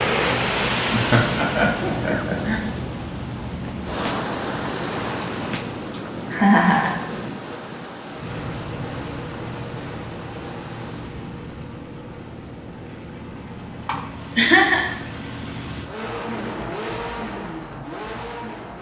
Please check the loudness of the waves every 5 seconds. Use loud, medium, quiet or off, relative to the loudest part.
loud, medium, quiet, off.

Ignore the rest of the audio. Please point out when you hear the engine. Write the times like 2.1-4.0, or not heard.
8.1-18.7.